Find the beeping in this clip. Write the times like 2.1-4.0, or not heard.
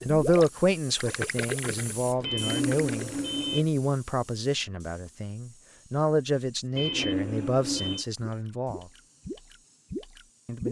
2.2-3.6, 6.8-8.1.